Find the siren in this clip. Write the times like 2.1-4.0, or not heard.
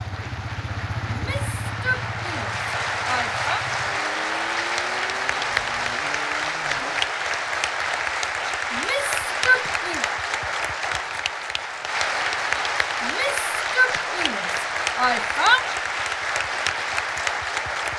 not heard.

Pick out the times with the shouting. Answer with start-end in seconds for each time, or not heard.
1.1-3.6, 8.7-10.1, 13.0-15.6.